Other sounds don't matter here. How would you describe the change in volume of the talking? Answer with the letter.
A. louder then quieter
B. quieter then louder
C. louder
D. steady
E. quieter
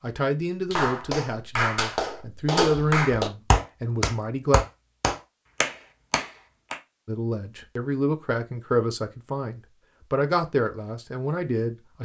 D.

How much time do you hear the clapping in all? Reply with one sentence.
The clapping can be heard for 6 seconds in total.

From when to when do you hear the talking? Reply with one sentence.
You can hear the talking from 0.0 to 4.6 s and from 7.0 to 12.0 s.